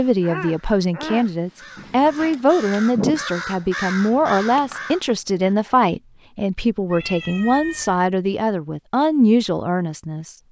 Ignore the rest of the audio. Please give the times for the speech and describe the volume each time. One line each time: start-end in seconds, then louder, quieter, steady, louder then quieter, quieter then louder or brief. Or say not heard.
0.0-10.3 steady.